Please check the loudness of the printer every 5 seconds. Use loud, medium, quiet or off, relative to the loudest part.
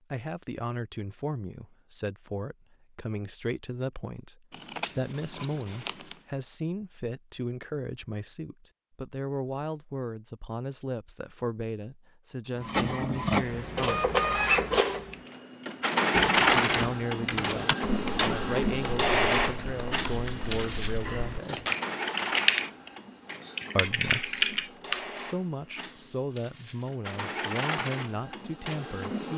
off, off, loud, loud, medium, medium.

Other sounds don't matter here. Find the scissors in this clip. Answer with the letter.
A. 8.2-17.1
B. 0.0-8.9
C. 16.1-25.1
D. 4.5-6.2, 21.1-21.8
D.